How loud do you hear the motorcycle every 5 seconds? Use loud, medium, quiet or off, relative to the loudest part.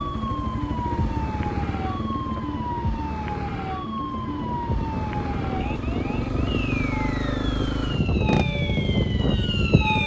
medium, loud.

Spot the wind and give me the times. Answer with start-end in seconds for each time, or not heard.
4.2-10.0.